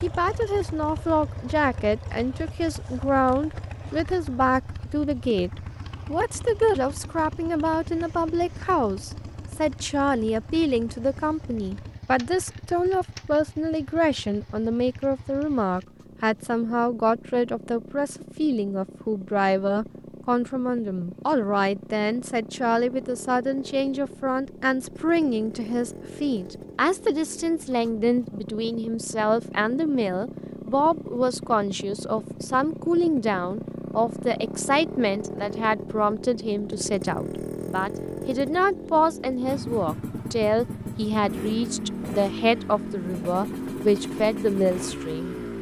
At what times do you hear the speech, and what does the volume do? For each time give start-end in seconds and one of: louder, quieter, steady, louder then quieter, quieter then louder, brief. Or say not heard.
0.0-45.4 steady.